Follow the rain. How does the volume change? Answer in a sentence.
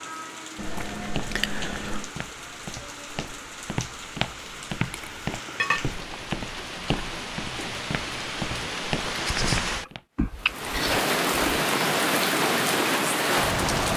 The loudness of the rain goes up.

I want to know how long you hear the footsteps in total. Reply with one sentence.
The footsteps can be heard for 9 seconds in total.